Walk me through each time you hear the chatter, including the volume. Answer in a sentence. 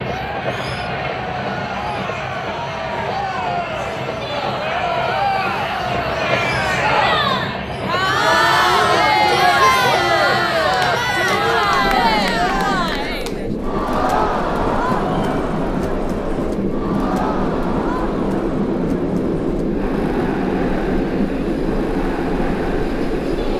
The chatter can be heard from 0.0 to 23.5 s, getting louder then quieter.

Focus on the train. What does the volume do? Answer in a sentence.
The loudness of the train goes up.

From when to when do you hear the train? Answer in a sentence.
The train can be heard from 0.0 to 23.5 s.